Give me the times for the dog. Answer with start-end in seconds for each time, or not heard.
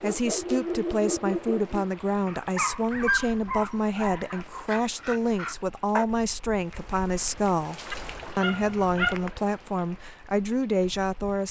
0.0-6.0, 7.7-9.3.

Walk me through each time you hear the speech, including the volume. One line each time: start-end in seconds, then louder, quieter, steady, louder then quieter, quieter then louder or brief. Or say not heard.
0.0-11.4 steady.